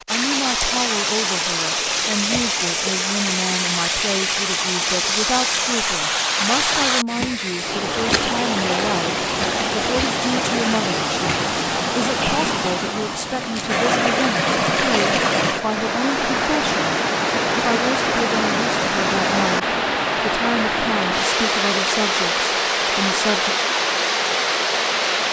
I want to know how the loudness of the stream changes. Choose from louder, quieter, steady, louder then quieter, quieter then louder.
steady.